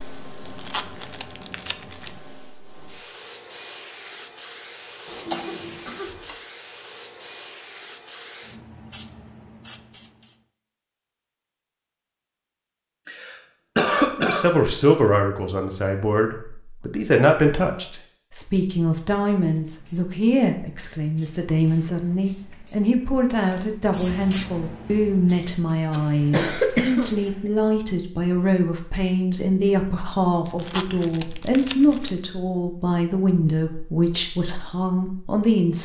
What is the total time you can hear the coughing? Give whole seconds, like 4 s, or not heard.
4 s.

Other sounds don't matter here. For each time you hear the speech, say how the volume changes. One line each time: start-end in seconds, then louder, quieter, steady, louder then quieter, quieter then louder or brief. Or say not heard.
14.2-35.8 steady.